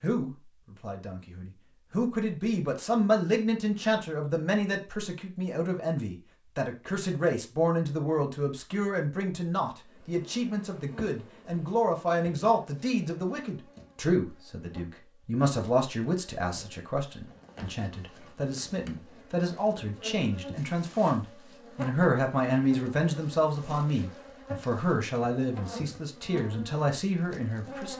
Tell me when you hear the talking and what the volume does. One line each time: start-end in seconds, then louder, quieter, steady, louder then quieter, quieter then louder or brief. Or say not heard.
0.0-27.9 steady.